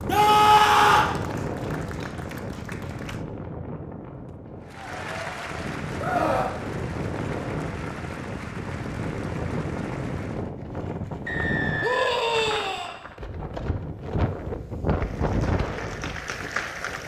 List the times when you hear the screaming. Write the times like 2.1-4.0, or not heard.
0.1-1.1, 6.0-6.5, 11.8-12.9.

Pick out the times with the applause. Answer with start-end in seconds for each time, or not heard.
0.0-3.2, 4.7-10.5, 14.9-17.0.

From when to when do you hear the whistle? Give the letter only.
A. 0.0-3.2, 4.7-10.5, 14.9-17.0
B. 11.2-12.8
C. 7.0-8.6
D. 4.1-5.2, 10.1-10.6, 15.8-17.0
B.